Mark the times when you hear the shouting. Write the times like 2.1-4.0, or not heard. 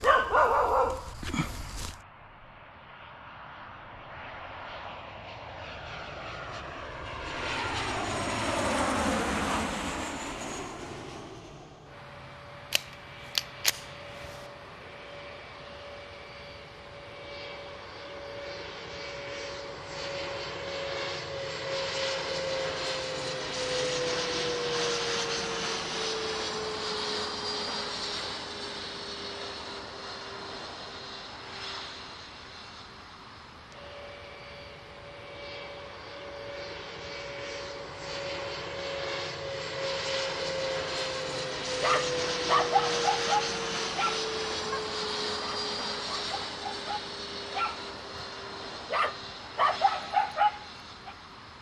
not heard.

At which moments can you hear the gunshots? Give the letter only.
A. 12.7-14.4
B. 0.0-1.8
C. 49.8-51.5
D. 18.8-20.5
A.